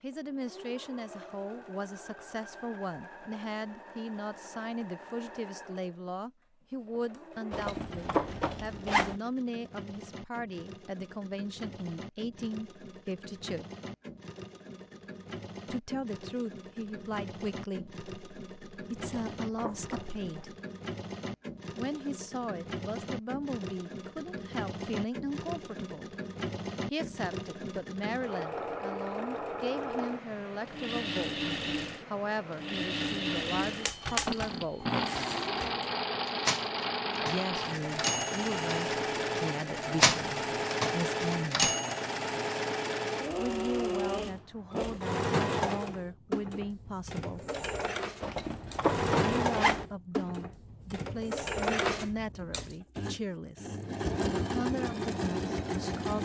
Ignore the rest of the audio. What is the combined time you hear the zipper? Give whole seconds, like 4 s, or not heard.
5 s.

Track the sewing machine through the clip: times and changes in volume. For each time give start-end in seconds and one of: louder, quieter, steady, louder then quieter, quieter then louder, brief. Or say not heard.
0.1-56.1 louder.